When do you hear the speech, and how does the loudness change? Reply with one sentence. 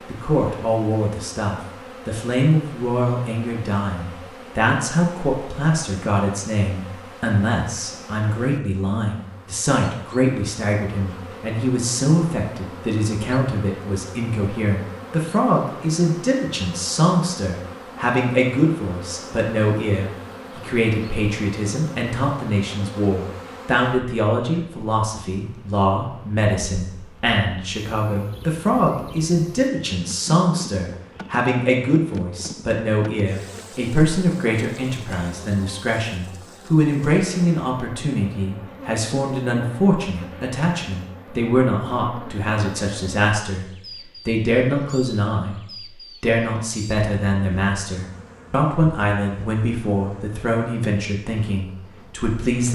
You can hear the speech from 0.1 to 52.7 s, at a steady volume.